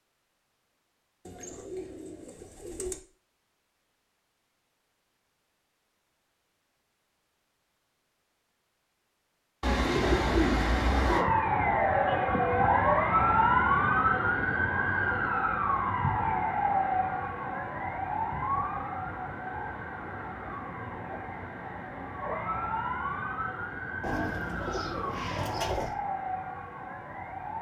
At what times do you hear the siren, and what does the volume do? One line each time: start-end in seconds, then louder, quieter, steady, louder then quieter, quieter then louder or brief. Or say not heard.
10.0-27.5 quieter.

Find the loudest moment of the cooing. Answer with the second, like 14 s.
10 s.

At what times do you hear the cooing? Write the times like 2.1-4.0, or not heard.
1.2-3.0, 9.6-11.2, 24.0-25.9.